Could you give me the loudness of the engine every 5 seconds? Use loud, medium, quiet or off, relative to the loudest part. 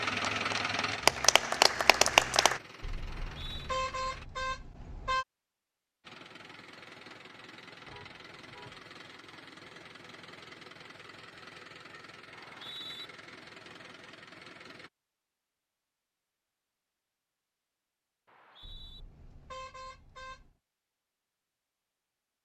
loud, quiet, quiet, off, off.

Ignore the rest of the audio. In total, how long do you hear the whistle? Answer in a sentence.
The whistle can be heard for 2 seconds in total.